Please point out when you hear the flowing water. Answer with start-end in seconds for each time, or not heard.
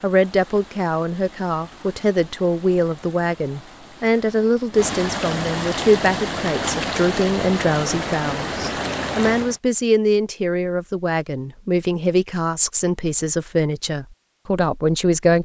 0.0-9.6.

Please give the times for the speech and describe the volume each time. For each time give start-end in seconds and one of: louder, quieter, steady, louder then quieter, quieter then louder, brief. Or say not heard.
0.0-15.3 steady.